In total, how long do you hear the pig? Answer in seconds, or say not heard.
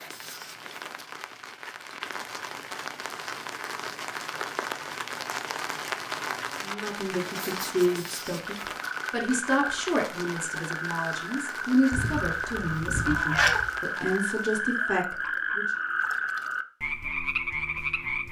not heard.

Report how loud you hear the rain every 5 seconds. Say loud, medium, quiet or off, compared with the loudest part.
loud, loud, medium, off.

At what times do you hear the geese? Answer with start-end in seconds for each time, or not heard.
11.9-13.7.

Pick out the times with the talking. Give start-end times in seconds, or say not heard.
6.6-15.7.